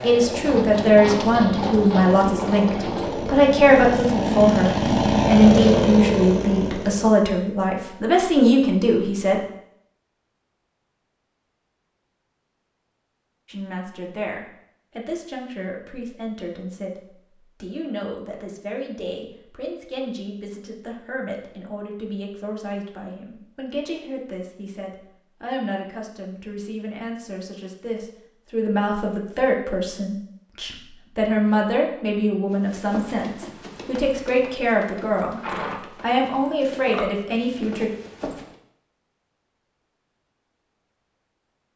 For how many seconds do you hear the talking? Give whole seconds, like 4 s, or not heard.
33 s.